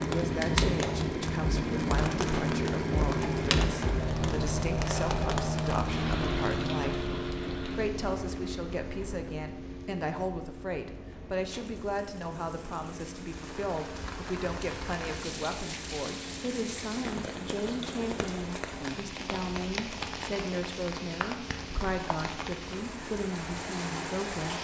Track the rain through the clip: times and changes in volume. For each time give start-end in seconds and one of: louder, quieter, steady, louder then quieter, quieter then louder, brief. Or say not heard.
0.0-24.6 quieter then louder.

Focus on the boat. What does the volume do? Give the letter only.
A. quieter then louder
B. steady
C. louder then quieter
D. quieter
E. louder
D.